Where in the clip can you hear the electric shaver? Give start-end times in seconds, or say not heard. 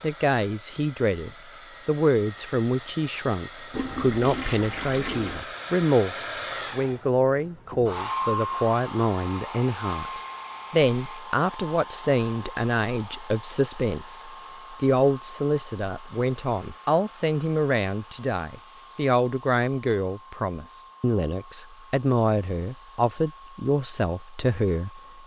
not heard.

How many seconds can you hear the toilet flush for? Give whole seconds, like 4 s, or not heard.
2 s.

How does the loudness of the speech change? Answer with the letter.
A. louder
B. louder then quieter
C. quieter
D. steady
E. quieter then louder
D.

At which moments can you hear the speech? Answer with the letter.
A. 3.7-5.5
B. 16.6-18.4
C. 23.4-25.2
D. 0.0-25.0
D.